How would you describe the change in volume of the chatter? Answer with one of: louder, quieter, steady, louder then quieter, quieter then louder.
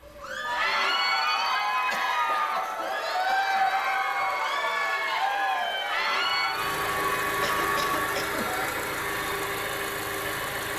quieter.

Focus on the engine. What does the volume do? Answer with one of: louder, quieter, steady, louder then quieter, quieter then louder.
louder.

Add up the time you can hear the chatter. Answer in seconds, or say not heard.
9 s.